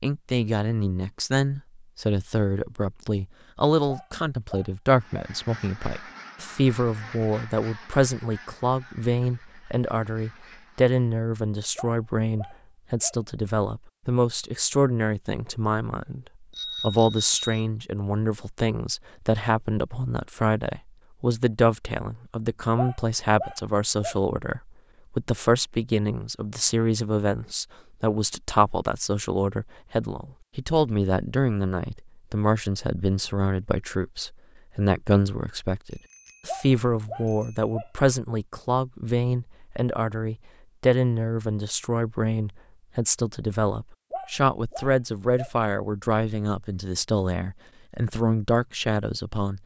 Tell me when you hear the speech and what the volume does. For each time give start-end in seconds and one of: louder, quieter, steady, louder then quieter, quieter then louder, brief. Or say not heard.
0.0-49.6 steady.